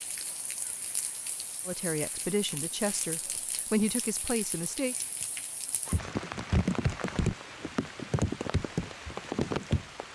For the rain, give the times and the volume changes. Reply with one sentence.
The rain can be heard from 0.0 to 10.1 s, getting louder.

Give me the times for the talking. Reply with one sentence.
You can hear the talking from 1.6 to 5.0 s.